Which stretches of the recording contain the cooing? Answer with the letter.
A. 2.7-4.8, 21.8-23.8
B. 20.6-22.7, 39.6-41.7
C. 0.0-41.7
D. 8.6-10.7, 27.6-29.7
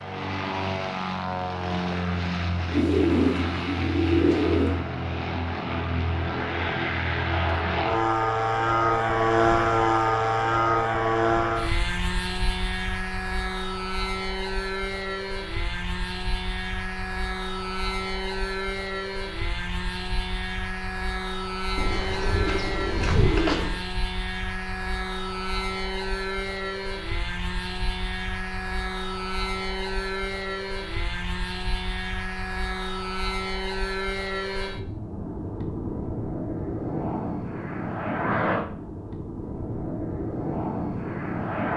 A.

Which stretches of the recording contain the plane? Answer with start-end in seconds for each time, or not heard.
0.0-41.7.